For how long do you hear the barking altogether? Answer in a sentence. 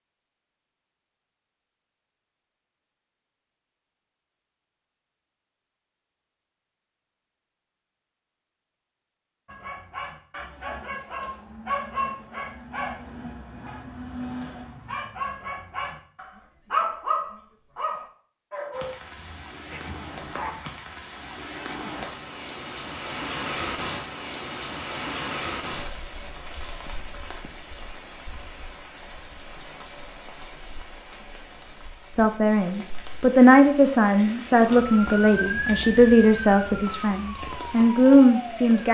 You can hear the barking for 11 seconds altogether.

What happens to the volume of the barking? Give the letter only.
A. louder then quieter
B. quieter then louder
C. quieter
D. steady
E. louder
A.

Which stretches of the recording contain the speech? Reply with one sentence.
The speech can be heard from 32.1 to 38.8 s.